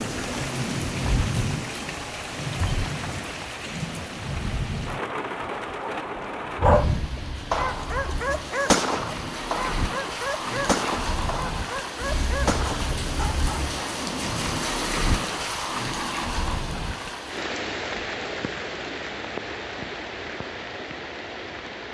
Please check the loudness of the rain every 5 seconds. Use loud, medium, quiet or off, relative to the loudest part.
loud, loud, loud, loud, medium.